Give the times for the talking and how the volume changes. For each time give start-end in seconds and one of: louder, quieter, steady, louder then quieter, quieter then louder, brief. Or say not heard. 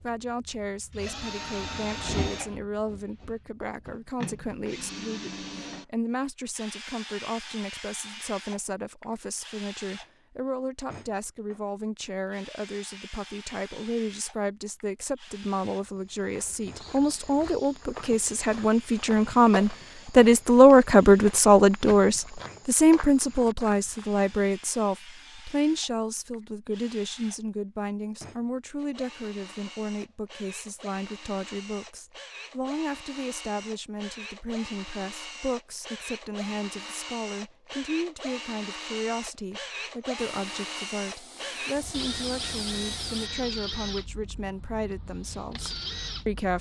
0.0-46.5 louder then quieter.